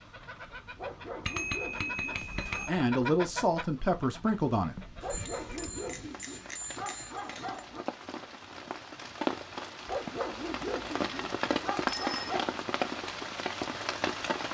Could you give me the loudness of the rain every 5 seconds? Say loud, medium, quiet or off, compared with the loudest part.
quiet, medium, loud.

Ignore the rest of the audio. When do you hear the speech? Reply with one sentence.
You can hear the speech from 2.6 to 5.1 s.